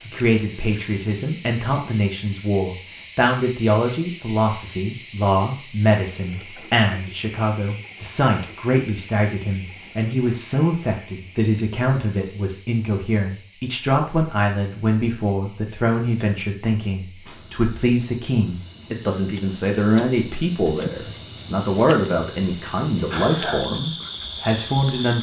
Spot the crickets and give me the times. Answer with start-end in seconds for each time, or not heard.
0.0-25.1.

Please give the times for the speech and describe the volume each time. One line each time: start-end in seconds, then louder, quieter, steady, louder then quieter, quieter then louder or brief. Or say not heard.
0.1-25.1 steady.